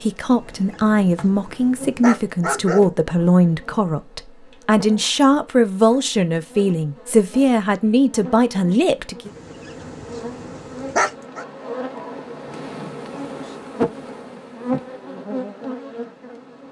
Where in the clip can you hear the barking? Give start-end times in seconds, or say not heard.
0.3-3.0, 9.2-11.4.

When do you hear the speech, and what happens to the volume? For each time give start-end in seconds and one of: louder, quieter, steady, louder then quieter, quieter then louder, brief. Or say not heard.
0.0-9.3 steady.